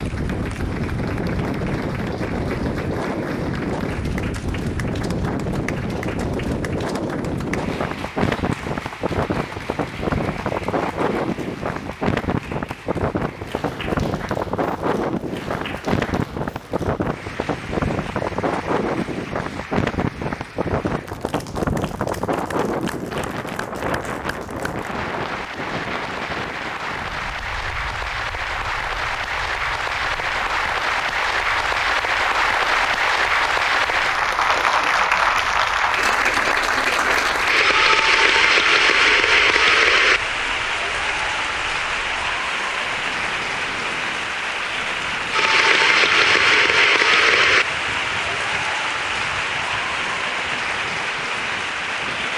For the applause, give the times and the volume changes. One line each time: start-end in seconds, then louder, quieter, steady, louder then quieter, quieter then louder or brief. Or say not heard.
0.0-52.3 louder.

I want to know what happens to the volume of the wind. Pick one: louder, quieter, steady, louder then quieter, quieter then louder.
quieter then louder.